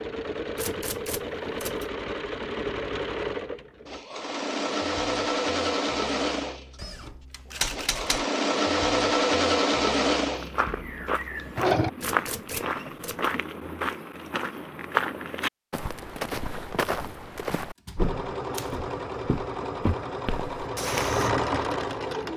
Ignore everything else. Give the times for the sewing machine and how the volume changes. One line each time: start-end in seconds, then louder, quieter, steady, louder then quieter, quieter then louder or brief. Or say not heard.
0.0-11.9 louder
17.9-22.3 louder.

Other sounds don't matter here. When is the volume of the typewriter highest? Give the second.
8 s.